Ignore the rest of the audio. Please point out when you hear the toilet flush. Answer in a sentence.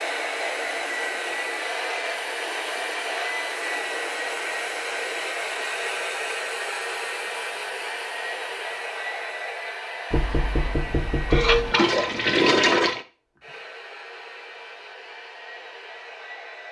You can hear the toilet flush from 11.3 to 13.1 s.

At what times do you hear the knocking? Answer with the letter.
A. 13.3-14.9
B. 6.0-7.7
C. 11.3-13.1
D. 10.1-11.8
D.